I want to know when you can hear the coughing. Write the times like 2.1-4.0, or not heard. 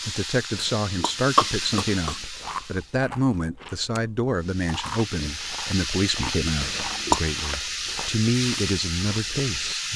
0.5-2.2, 6.6-7.2.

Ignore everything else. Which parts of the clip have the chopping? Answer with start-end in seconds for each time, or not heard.
not heard.